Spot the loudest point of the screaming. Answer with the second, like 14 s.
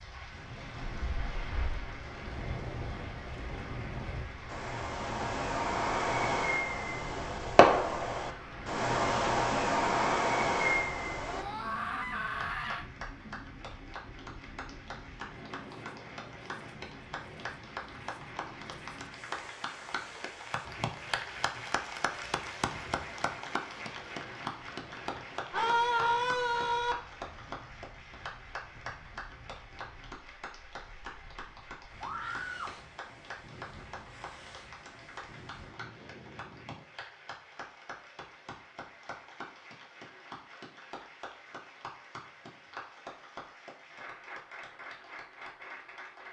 26 s.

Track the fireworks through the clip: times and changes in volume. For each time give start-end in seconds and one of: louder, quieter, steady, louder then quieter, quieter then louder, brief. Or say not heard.
0.8-11.4 louder.